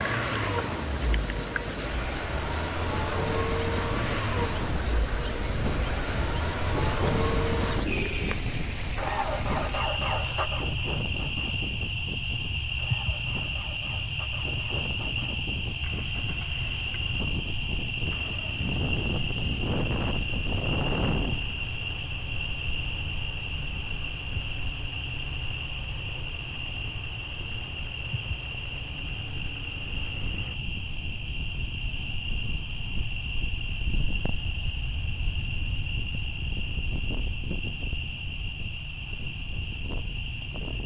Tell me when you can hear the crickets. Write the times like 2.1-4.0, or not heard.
0.0-40.8.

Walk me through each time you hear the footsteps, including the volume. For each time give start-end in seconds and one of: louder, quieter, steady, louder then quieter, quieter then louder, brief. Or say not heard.
not heard.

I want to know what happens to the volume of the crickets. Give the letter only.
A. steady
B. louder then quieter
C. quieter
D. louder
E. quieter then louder
C.